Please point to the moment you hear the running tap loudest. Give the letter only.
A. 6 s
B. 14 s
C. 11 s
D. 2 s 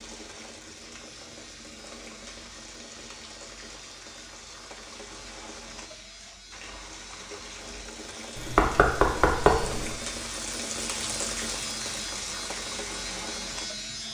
C.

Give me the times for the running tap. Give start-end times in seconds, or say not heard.
0.0-14.0.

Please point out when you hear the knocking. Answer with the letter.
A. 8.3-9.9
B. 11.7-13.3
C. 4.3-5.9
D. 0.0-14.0
A.